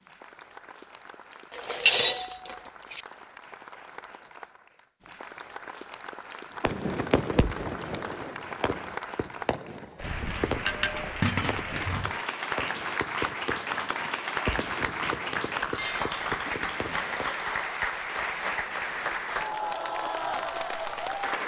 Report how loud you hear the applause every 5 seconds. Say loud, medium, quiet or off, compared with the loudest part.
quiet, medium, loud, loud, loud.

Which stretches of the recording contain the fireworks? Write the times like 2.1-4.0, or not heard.
6.6-17.4.